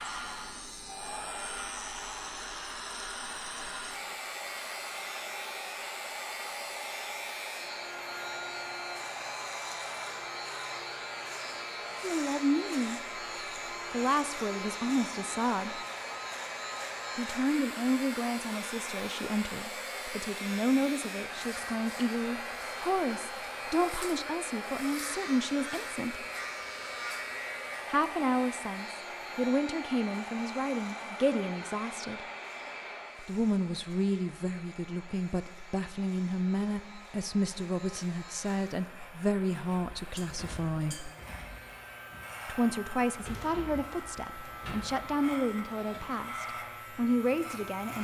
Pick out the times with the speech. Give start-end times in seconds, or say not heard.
12.0-13.0, 13.9-15.8, 17.1-26.2, 27.9-32.2, 33.2-41.1, 42.5-47.9.